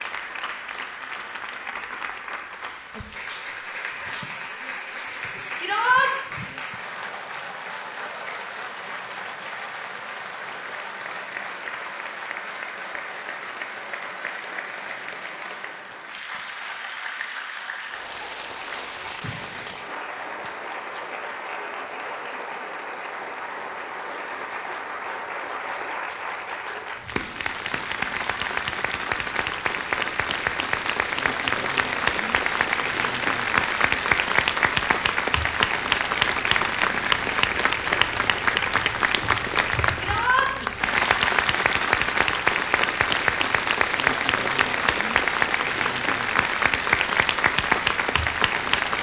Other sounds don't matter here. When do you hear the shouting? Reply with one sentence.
The shouting can be heard from 5.5 to 6.1 s and from 40.0 to 40.5 s.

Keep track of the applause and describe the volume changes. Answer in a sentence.
The loudness of the applause goes up.